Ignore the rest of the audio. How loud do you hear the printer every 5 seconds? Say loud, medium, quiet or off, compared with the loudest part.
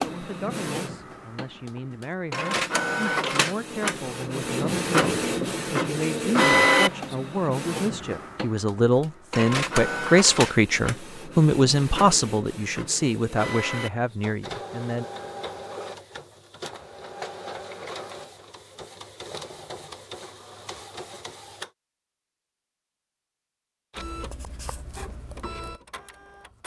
loud, loud, medium, quiet, quiet, quiet.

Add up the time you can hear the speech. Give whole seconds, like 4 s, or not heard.
15 s.